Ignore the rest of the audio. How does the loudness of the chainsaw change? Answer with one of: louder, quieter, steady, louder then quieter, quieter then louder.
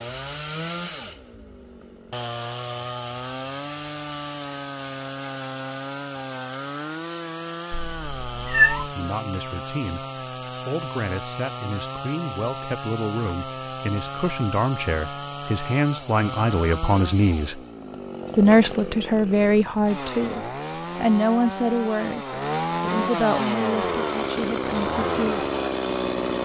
louder.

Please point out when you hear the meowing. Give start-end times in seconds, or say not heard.
7.7-8.9.